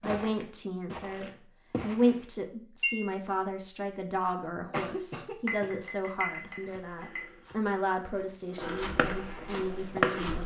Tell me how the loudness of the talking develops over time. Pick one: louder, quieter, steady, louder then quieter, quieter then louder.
quieter.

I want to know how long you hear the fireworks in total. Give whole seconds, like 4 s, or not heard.
2 s.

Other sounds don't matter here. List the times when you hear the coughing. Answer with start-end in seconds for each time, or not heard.
4.2-5.7.